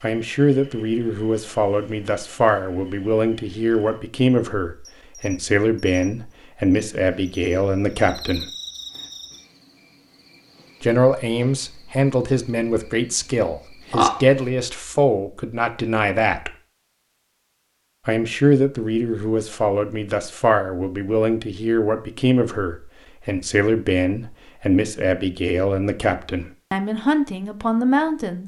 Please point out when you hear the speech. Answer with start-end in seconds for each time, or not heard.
0.0-8.5, 10.8-16.5, 18.1-28.4.